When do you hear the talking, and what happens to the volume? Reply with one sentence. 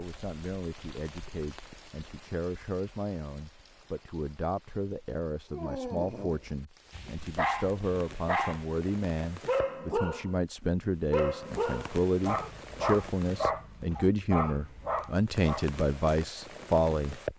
You can hear the talking from 0.0 to 17.2 s, getting louder.